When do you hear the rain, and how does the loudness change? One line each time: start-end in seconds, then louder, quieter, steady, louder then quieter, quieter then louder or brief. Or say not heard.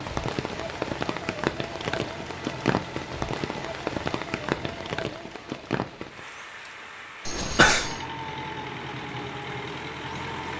0.0-10.5 quieter.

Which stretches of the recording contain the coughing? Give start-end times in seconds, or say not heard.
7.2-8.0.